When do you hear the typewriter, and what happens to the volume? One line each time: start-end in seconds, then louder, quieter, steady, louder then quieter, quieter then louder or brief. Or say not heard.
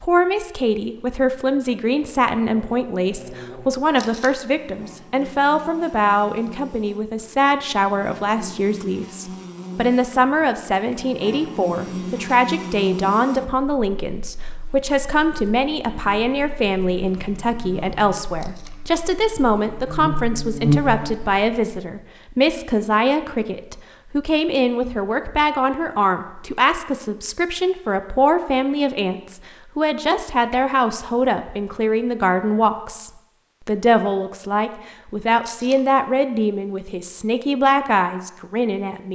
not heard.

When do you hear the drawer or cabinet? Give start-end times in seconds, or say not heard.
not heard.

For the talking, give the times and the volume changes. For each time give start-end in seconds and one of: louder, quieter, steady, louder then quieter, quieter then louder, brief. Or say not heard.
0.0-39.1 steady.